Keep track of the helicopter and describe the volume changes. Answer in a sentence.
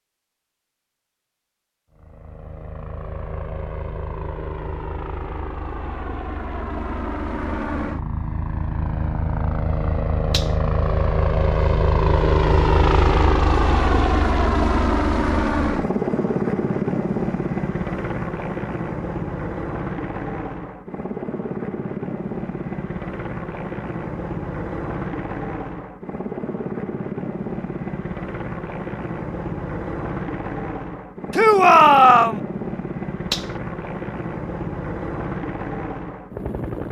The volume of the helicopter goes up, then down.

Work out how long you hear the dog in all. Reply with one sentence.
The dog can't be heard in this clip.